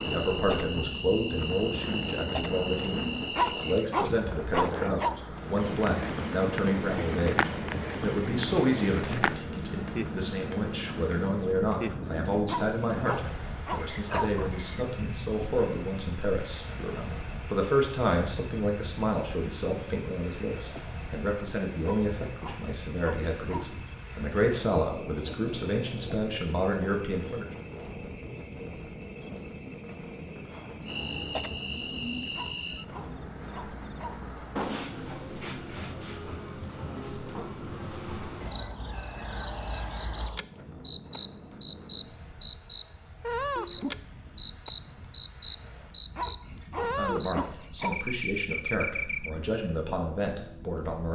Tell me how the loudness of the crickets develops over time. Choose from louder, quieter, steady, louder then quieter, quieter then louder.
quieter then louder.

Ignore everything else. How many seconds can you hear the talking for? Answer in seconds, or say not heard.
32 s.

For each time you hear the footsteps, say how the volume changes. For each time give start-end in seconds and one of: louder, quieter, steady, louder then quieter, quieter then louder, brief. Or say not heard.
not heard.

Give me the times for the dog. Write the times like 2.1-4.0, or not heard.
3.4-5.2, 12.4-14.3, 21.8-23.7, 32.3-34.2, 46.1-48.0.